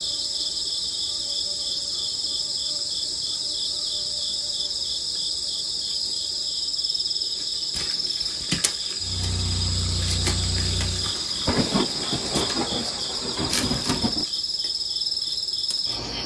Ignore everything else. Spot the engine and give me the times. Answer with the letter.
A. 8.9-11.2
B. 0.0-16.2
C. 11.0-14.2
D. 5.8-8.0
A.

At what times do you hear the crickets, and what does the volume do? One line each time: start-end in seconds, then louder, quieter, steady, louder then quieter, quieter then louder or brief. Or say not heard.
0.0-16.2 steady.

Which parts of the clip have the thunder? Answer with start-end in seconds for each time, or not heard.
11.0-14.2.